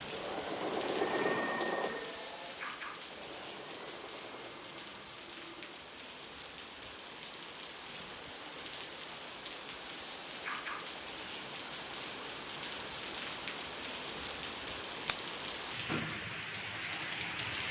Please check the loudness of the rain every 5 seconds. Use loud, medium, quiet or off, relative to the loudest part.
medium, medium, loud, loud.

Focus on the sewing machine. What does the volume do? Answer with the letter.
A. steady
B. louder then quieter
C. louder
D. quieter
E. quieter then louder
D.